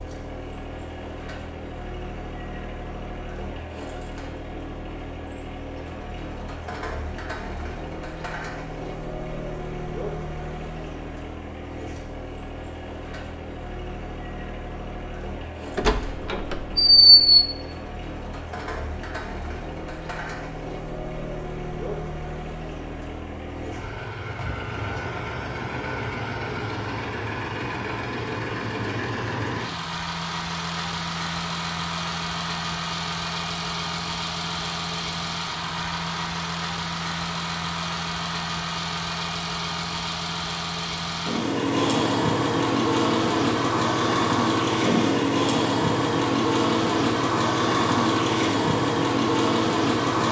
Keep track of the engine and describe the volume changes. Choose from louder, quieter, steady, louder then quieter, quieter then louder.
louder.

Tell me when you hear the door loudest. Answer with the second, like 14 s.
17 s.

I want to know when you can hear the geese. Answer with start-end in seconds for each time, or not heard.
not heard.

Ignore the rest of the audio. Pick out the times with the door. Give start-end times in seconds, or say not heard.
15.8-17.4.